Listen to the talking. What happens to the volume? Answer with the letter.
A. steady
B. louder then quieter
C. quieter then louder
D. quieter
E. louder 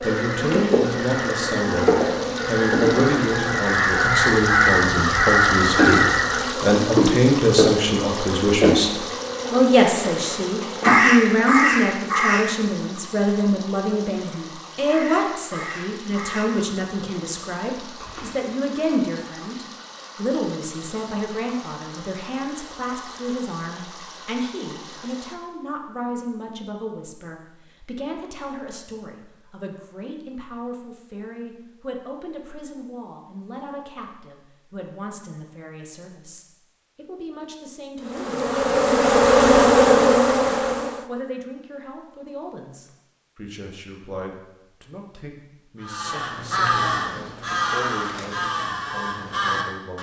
D.